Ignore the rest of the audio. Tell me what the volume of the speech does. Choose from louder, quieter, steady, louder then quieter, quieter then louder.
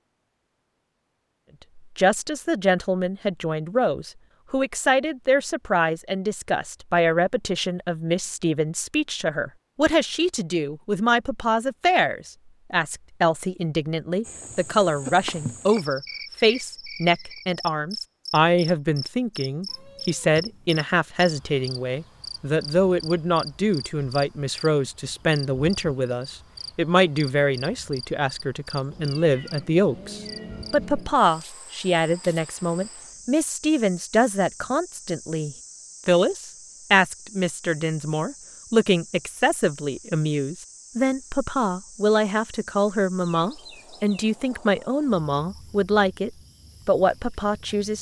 steady.